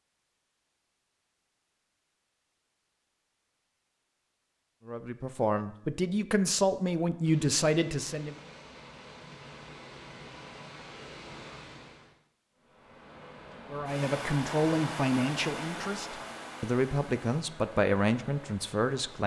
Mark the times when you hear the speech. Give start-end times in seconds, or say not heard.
4.8-8.3, 13.7-19.2.